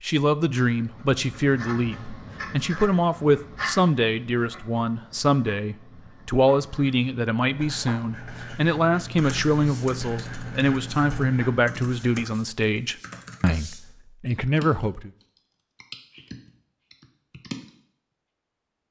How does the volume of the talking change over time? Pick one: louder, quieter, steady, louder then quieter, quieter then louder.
steady.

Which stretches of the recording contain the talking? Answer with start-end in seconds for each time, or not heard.
0.0-15.1.